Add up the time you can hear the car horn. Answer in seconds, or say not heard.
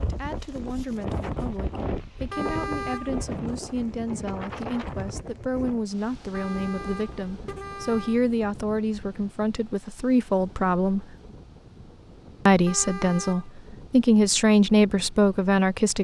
4 s.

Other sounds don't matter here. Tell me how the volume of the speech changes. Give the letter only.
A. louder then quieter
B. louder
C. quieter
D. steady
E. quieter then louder
B.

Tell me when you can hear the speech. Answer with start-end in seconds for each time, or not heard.
0.0-11.1, 12.4-15.9.